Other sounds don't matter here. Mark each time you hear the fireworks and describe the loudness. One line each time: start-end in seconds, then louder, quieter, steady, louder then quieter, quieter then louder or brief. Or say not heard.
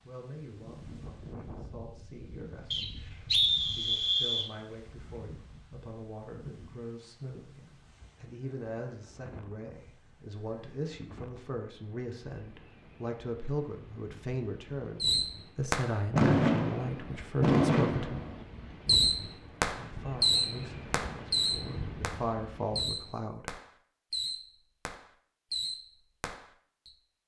15.0-26.9 quieter.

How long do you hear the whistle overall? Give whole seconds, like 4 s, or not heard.
2 s.